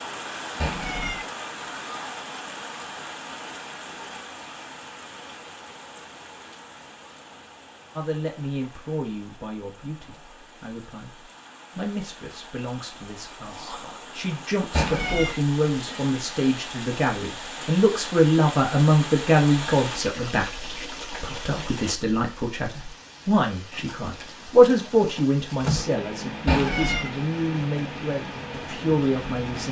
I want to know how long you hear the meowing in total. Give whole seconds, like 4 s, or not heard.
2 s.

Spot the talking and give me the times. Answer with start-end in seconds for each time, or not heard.
8.0-11.1, 11.8-20.4, 21.2-29.6.